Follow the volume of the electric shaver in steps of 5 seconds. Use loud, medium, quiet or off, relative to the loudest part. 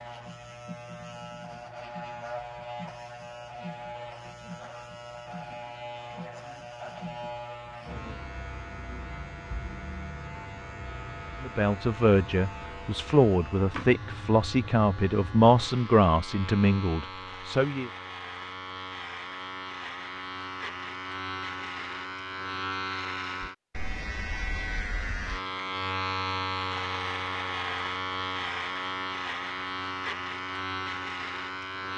medium, medium, medium, medium, loud, loud, loud.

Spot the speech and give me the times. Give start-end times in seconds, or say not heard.
11.4-17.9.